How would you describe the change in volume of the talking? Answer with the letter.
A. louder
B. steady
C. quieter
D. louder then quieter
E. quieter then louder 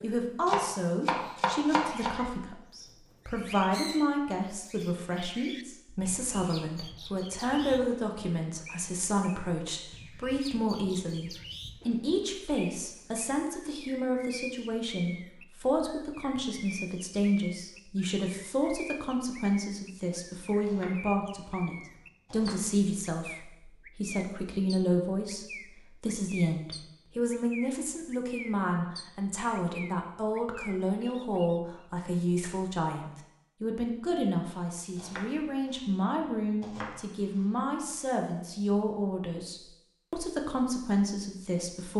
B.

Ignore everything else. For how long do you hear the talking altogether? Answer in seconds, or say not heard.
42 s.